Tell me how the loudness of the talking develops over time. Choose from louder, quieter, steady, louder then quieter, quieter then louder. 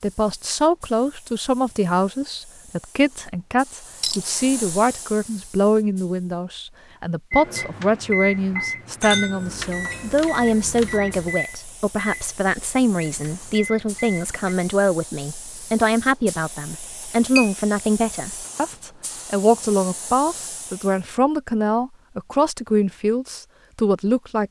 steady.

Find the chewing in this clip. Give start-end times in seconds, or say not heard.
not heard.